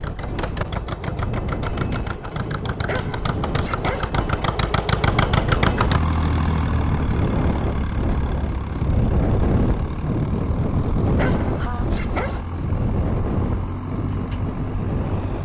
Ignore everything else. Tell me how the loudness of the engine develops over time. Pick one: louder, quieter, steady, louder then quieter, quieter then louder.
louder then quieter.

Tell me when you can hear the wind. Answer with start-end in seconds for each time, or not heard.
0.0-15.3.